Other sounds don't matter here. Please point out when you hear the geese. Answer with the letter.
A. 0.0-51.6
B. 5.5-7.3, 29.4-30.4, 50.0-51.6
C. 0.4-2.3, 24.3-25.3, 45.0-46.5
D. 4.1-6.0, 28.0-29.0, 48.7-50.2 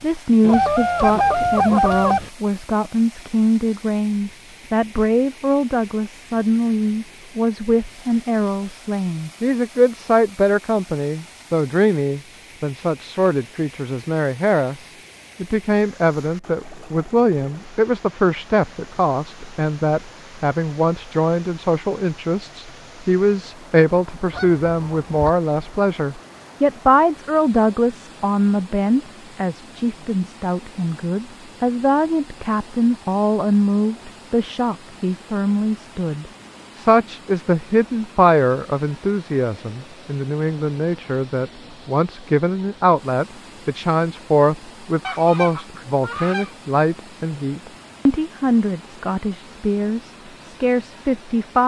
C.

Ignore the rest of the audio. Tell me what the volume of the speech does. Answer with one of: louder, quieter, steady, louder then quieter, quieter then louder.
steady.